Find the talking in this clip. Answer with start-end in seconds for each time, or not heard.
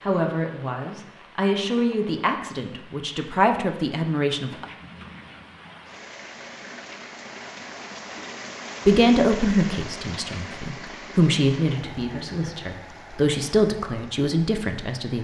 0.0-4.7, 8.8-15.1.